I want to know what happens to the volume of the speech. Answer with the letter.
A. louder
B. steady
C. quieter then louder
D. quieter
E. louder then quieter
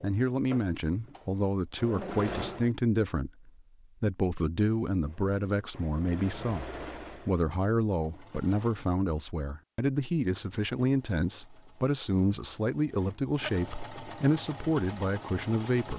B.